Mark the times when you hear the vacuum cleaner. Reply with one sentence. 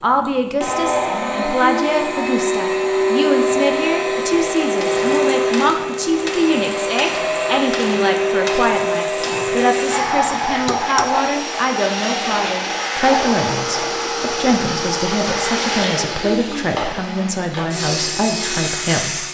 The vacuum cleaner can be heard from 0.0 to 19.2 s.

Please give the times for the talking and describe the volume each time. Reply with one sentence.
The talking can be heard from 0.0 to 19.2 s, at a steady volume.